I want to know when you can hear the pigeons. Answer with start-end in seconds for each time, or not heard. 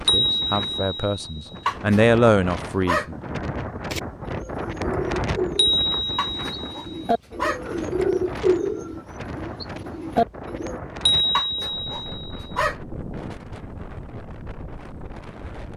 3.9-10.8.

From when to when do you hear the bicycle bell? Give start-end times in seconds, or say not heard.
0.1-1.6, 5.5-7.1, 11.1-12.6.